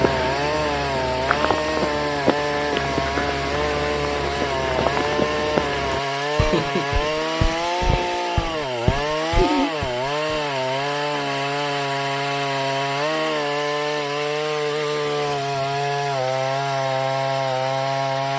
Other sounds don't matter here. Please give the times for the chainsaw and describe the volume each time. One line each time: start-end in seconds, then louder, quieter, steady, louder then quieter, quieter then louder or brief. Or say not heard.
0.0-18.3 steady.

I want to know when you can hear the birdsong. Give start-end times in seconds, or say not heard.
not heard.